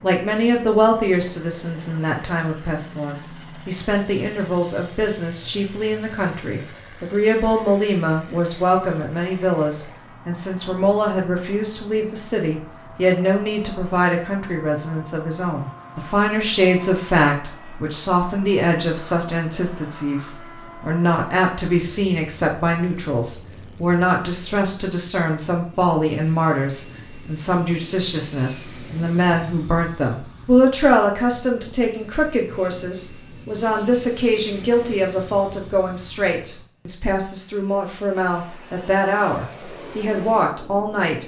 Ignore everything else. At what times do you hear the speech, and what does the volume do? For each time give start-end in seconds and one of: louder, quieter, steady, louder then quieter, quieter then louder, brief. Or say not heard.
0.0-41.2 steady.